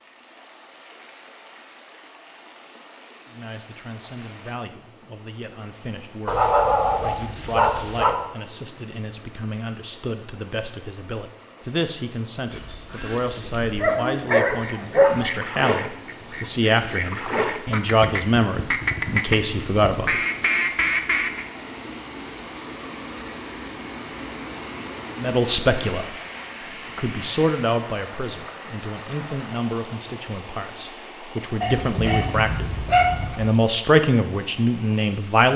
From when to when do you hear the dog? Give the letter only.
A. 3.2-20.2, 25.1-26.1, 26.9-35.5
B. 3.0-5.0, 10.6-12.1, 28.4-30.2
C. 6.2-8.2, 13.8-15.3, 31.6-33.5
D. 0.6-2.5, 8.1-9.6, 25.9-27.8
C.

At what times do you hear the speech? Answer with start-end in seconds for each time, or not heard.
3.2-20.2, 25.1-26.1, 26.9-35.5.